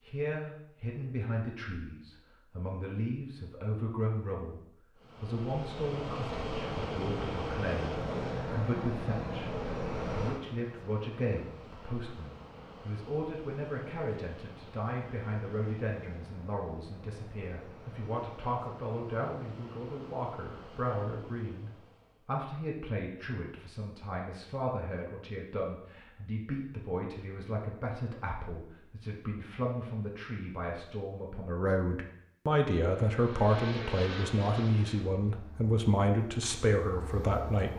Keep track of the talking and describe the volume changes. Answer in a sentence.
The loudness of the talking goes up.